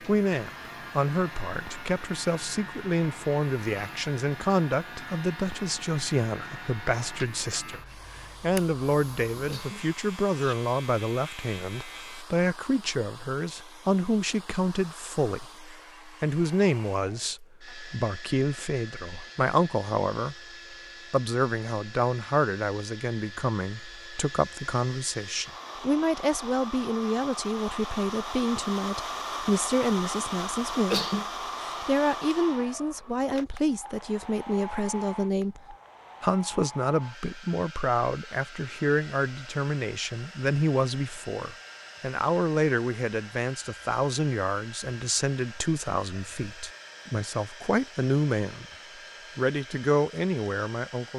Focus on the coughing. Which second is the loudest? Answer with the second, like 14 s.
31 s.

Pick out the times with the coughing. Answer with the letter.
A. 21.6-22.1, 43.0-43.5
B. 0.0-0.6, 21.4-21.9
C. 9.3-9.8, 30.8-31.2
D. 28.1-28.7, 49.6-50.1
C.